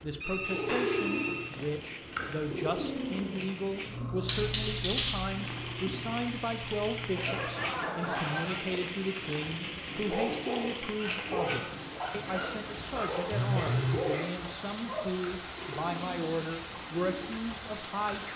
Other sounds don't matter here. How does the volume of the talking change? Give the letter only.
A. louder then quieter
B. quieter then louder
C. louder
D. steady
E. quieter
D.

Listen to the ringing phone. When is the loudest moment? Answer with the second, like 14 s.
14 s.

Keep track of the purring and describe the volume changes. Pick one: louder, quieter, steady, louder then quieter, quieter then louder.
quieter.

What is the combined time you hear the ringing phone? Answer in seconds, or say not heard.
4 s.